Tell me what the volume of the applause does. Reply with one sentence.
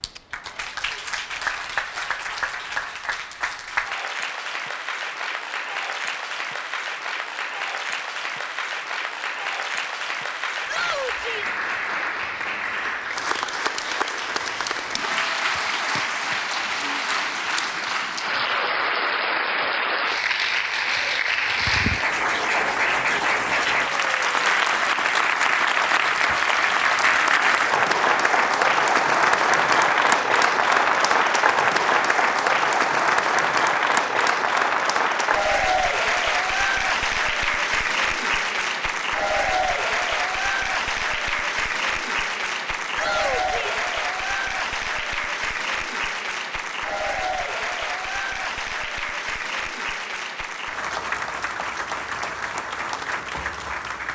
The volume of the applause goes up, then down.